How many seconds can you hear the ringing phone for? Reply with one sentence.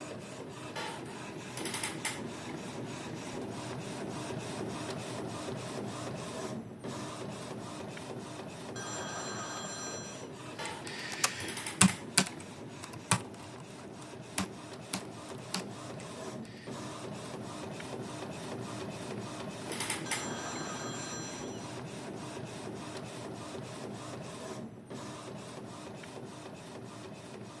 You can hear the ringing phone for 3 seconds altogether.